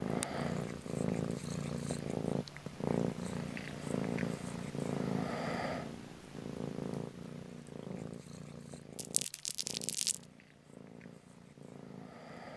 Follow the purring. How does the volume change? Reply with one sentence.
The loudness of the purring goes down.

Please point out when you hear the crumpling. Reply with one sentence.
You can hear the crumpling from 8.9 to 10.2 s.